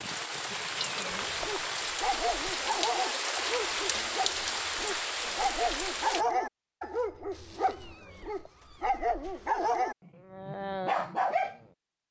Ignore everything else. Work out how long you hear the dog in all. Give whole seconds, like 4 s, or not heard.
10 s.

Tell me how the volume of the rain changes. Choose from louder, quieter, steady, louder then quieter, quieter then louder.
steady.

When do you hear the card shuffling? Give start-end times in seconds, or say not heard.
not heard.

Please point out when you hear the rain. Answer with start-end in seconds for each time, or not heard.
0.0-6.2.